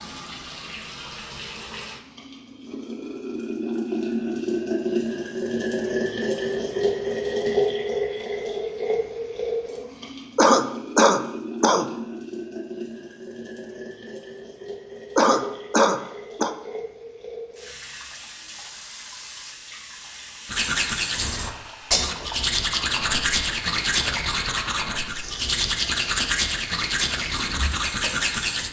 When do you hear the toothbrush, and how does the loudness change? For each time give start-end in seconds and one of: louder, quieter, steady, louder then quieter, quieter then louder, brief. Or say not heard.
20.4-28.6 steady.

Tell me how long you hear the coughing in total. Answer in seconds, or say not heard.
3 s.